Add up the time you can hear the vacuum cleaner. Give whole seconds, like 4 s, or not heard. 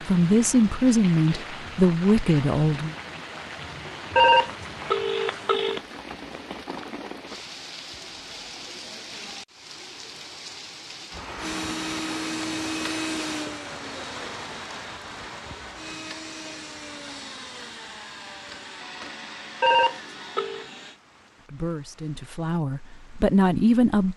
10 s.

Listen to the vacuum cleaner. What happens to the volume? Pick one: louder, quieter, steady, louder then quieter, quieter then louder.
quieter.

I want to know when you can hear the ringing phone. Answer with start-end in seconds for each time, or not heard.
4.2-5.8, 19.6-20.6.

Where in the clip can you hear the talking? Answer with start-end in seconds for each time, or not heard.
0.0-3.0, 21.4-24.1.